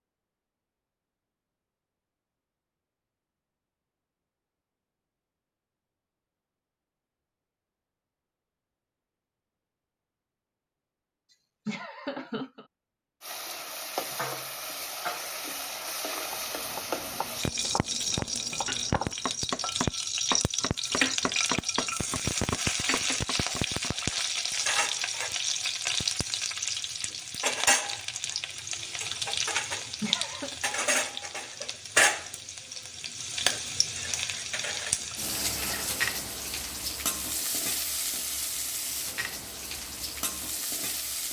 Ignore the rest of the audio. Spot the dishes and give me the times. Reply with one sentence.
The dishes can't be heard in this clip.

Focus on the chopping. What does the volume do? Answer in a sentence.
The volume of the chopping goes up, then down.